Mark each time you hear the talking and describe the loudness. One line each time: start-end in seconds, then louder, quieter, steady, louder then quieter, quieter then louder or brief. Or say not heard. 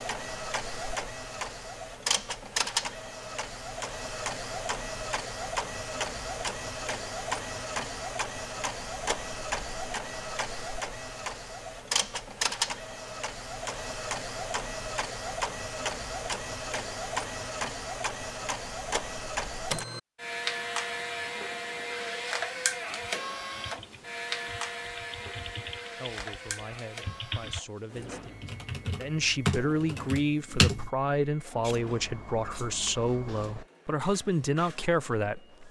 25.8-35.5 louder.